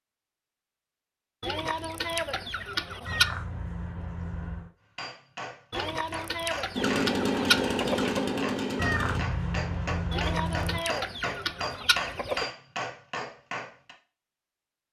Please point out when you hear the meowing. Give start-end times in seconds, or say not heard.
3.0-4.7, 8.8-10.8.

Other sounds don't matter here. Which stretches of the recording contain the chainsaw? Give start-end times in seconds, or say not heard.
6.7-9.2.